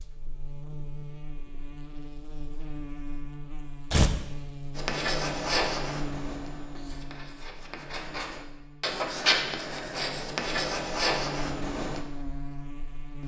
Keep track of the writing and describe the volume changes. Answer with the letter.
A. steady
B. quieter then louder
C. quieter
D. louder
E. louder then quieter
B.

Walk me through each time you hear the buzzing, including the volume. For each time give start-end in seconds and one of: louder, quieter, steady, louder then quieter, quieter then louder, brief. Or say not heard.
0.0-13.2 quieter then louder.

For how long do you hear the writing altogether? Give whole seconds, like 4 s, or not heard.
7 s.